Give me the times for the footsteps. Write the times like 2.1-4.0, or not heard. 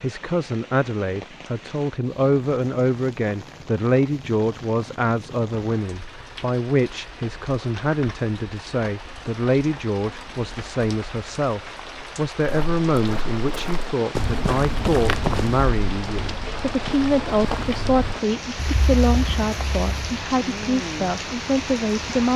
12.4-20.2.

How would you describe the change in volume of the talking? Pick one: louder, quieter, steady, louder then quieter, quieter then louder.
steady.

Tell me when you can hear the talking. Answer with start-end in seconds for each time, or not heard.
0.0-22.3.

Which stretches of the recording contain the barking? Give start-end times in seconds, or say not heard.
not heard.